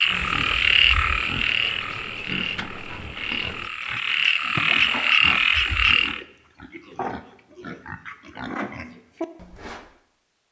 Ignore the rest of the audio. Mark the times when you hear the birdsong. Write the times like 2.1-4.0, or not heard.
not heard.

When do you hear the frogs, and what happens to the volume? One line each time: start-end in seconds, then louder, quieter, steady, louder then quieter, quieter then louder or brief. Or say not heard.
0.0-6.2 quieter then louder.